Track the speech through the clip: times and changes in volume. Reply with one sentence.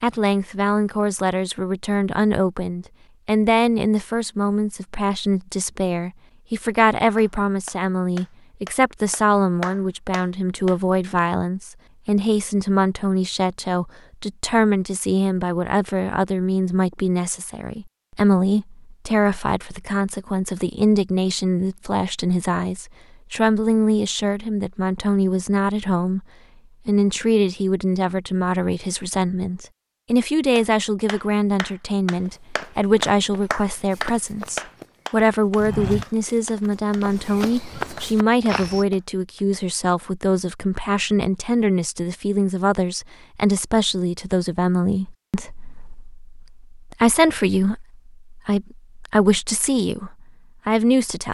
You can hear the speech from 0.0 to 26.2 s, at a steady volume; and from 26.9 to 51.2 s, at a steady volume.